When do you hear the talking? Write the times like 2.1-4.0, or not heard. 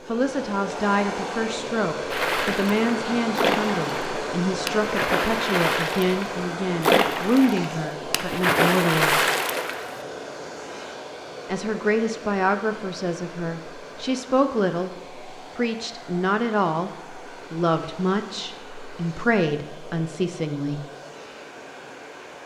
0.1-9.2, 11.4-20.8.